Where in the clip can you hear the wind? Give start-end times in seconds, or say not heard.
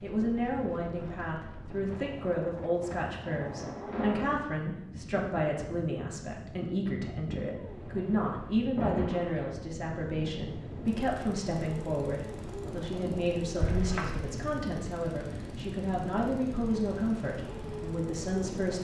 0.0-18.7.